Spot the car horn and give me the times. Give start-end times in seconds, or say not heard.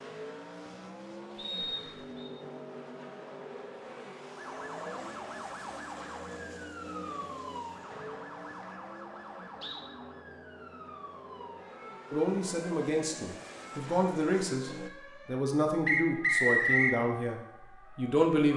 not heard.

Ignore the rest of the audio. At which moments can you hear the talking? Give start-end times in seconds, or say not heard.
12.1-18.5.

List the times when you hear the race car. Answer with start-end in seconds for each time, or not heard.
0.0-14.9.